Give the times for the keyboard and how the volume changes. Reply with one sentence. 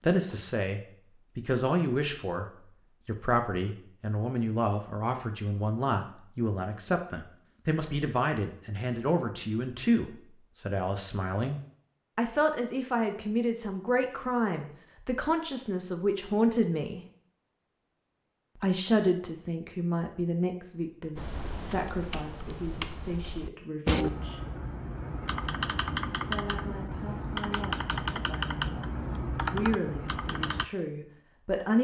You can hear the keyboard from 21.1 to 30.6 s, at a steady volume.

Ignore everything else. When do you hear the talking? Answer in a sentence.
You can hear the talking from 0.0 to 17.1 s, from 18.6 to 24.4 s and from 26.2 to 31.7 s.